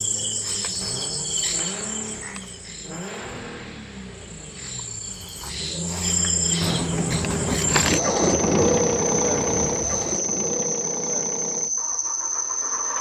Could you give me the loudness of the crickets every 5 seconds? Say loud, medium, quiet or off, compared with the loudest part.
medium, loud, loud.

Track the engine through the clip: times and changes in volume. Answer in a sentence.
The engine can be heard from 0.0 to 12.9 s, getting louder then quieter.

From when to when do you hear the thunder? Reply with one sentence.
The thunder can be heard from 6.6 to 10.2 s.